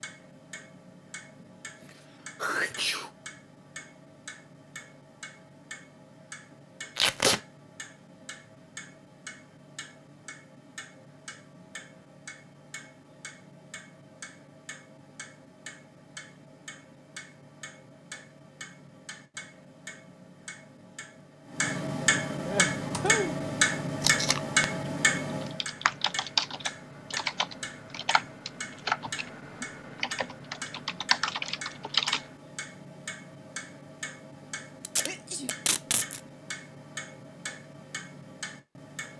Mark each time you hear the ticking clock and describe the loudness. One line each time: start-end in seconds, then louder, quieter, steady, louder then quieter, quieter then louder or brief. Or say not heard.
0.0-39.1 louder then quieter.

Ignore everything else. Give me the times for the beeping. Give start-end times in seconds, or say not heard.
not heard.